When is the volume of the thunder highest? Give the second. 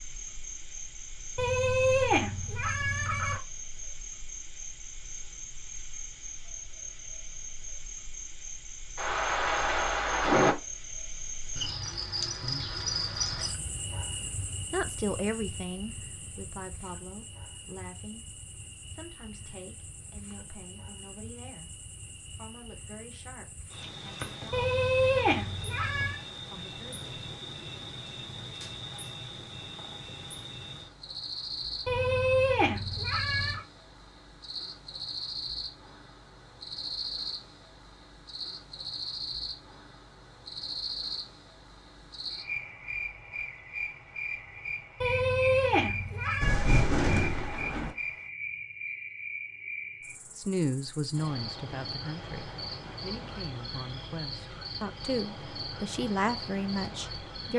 10 s.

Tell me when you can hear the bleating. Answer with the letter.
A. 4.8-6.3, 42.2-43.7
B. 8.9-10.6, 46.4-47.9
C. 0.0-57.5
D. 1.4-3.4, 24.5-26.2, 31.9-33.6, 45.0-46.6
D.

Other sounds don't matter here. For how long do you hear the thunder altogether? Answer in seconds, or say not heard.
3 s.